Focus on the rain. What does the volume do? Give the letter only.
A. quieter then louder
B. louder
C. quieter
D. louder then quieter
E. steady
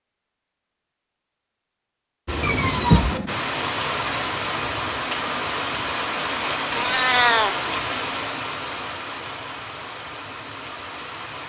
C.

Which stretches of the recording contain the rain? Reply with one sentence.
The rain can be heard from 2.2 to 11.4 s.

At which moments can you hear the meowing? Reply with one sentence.
You can hear the meowing from 2.4 to 3.4 s and from 6.7 to 7.5 s.